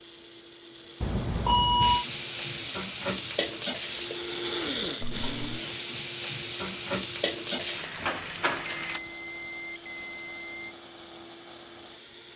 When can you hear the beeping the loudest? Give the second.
2 s.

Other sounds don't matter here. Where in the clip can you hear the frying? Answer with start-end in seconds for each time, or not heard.
1.8-9.0.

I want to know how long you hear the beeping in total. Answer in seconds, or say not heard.
4 s.